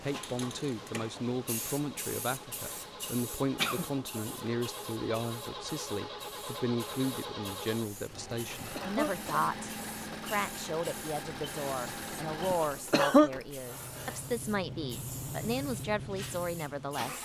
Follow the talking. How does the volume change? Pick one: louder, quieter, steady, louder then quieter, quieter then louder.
steady.